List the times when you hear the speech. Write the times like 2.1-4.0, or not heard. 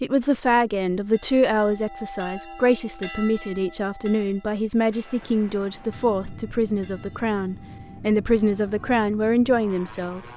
0.0-10.3.